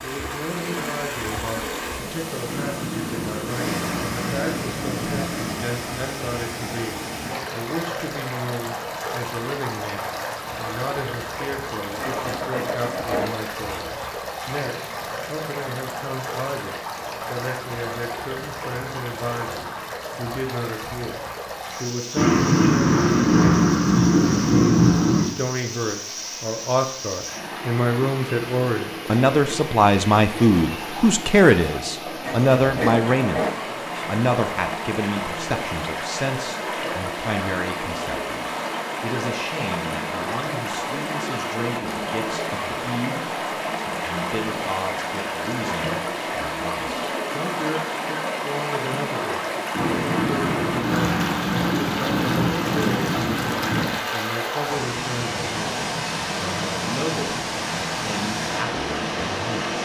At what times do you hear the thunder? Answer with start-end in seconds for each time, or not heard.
2.5-5.7, 22.1-25.3, 49.7-54.0.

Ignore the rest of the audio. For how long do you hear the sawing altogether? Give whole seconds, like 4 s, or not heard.
4 s.